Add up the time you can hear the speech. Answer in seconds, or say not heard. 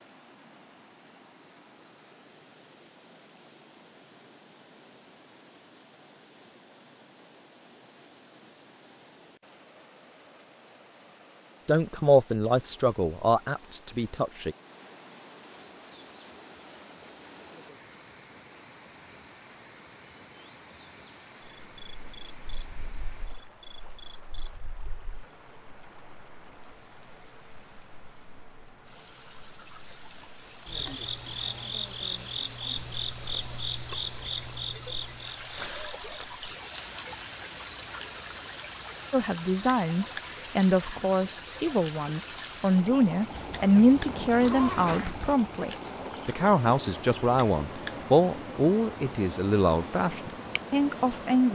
15 s.